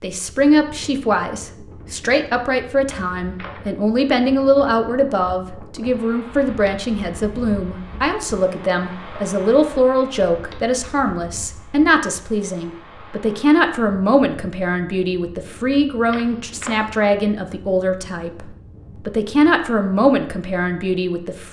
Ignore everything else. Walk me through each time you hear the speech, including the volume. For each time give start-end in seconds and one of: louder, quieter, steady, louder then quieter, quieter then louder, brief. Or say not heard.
0.0-18.4 steady
19.1-21.4 brief.